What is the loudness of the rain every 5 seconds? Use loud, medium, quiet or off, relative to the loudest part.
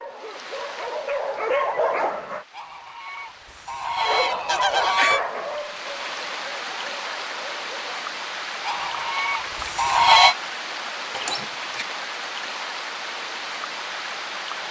quiet, loud, loud.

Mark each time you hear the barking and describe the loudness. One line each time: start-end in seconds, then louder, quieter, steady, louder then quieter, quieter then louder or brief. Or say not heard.
0.0-2.5 brief
4.0-8.1 quieter.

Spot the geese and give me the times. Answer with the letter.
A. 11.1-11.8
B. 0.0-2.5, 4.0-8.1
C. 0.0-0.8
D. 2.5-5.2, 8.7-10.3
D.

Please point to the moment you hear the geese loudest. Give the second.
10 s.